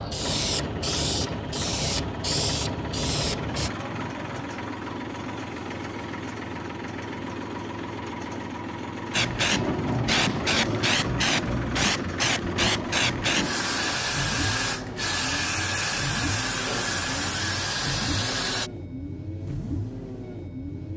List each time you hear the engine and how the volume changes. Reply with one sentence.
The engine can be heard from 0.0 to 20.9 s, at a steady volume.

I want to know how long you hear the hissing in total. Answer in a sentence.
You can hear the hissing for 13 seconds altogether.